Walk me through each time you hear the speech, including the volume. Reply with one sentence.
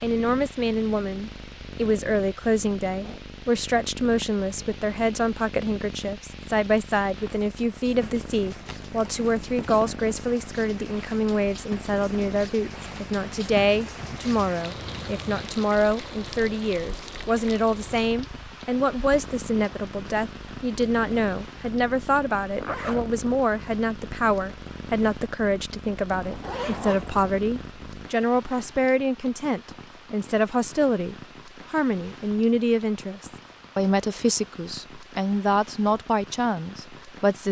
You can hear the speech from 0.0 to 37.4 s, at a steady volume.